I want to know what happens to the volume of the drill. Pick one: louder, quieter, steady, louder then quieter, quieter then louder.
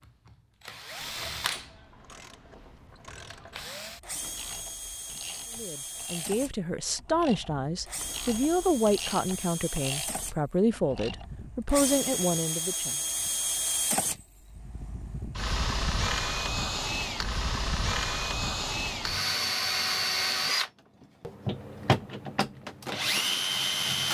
louder.